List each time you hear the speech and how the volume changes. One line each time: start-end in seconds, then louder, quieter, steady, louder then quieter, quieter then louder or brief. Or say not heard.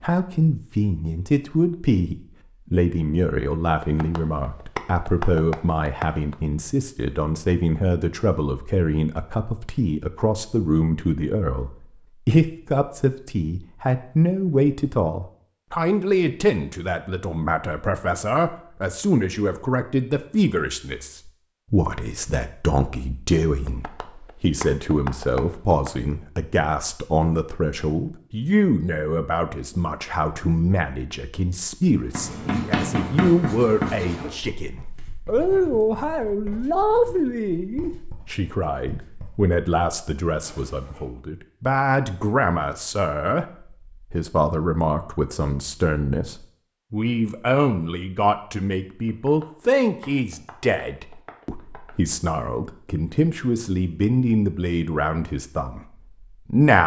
0.0-56.8 steady.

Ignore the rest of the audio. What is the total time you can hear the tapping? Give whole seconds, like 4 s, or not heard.
8 s.